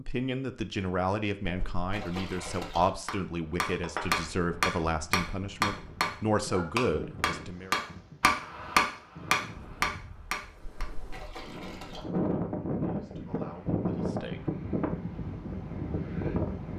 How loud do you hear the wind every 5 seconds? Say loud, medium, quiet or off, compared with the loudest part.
off, quiet, loud, loud.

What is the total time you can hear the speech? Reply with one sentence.
The speech can be heard for 9 seconds in total.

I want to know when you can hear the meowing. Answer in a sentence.
The meowing can't be heard in this clip.